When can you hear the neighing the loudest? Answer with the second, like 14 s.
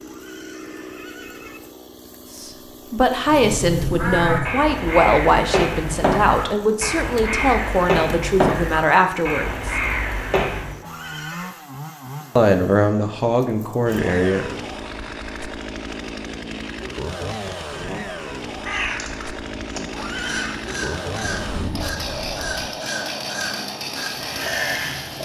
20 s.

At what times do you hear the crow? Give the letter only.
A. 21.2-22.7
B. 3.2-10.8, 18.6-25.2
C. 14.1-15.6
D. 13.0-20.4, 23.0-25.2
B.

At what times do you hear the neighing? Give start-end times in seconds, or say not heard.
0.1-1.6, 10.8-11.6, 19.9-20.6.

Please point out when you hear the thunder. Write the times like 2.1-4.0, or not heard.
21.2-22.7.